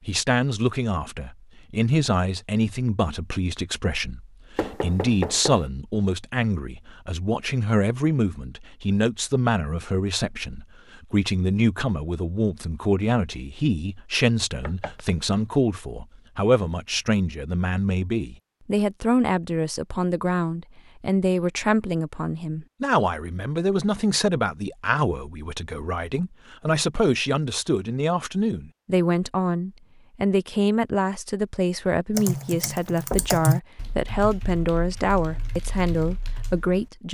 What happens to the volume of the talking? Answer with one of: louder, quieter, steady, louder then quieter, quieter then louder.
steady.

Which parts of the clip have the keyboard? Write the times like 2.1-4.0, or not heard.
32.1-36.9.